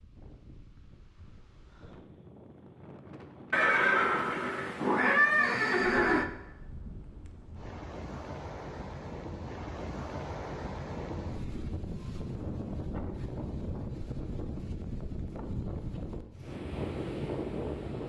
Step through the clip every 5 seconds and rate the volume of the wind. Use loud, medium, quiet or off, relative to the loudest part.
quiet, medium, loud, loud.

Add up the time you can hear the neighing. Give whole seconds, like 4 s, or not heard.
3 s.